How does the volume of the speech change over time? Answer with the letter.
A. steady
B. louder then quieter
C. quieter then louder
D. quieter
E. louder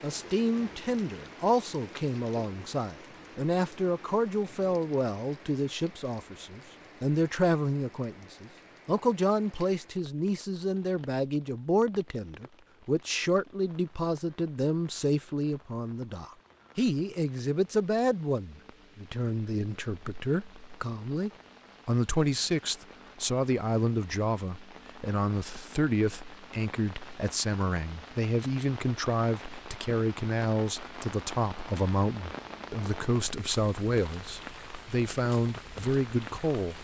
A.